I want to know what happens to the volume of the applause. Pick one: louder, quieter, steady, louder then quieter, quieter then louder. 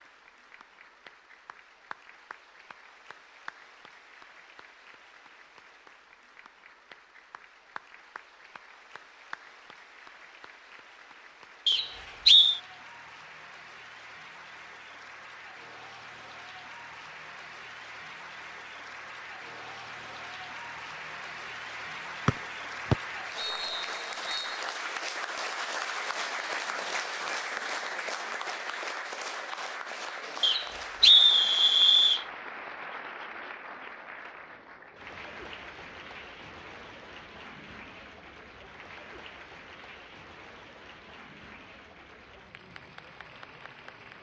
louder then quieter.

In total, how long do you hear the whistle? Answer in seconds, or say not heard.
5 s.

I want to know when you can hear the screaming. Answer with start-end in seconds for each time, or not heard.
not heard.